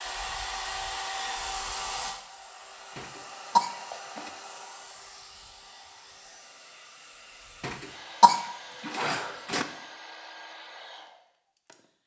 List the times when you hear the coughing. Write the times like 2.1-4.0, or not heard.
3.0-4.3, 7.6-9.7.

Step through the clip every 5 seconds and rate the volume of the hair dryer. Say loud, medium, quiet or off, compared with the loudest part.
loud, medium, medium.